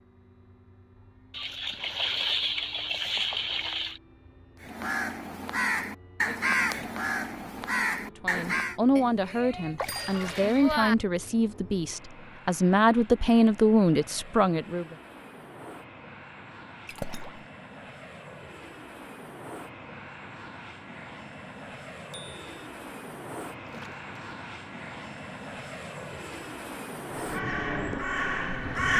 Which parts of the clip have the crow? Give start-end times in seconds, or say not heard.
4.6-8.8, 27.1-28.9.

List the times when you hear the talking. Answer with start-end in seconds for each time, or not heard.
8.1-14.9.